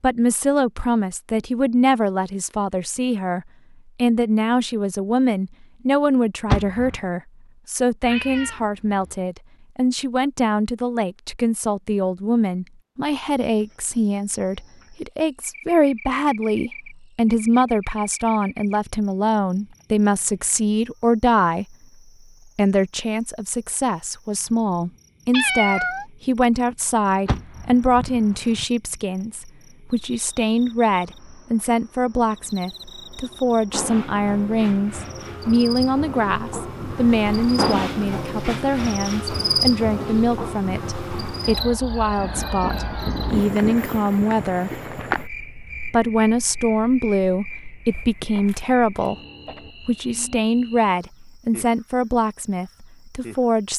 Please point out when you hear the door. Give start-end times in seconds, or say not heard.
6.5-7.0, 27.2-28.6.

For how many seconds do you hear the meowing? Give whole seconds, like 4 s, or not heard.
4 s.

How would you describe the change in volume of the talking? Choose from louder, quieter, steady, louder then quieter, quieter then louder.
steady.